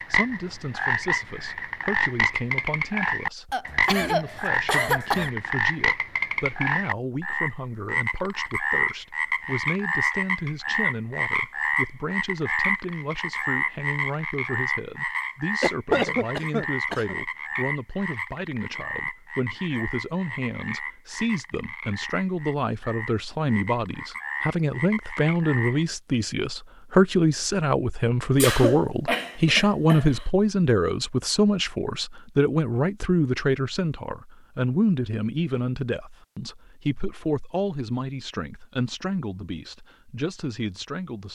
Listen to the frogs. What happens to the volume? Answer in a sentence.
The volume of the frogs goes down.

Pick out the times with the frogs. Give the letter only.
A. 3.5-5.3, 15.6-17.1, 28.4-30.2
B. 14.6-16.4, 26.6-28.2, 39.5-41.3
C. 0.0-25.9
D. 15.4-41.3
C.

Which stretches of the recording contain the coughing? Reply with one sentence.
You can hear the coughing from 3.5 to 5.3 s, from 15.6 to 17.1 s and from 28.4 to 30.2 s.